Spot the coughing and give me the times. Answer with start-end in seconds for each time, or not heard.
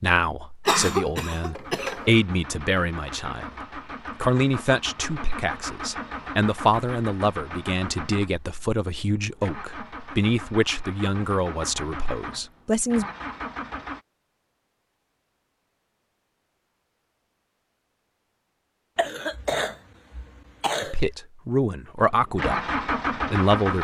0.7-2.1, 18.9-21.1.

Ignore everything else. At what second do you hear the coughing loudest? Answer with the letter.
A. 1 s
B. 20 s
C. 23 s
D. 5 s
A.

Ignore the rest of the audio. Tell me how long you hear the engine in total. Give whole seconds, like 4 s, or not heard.
14 s.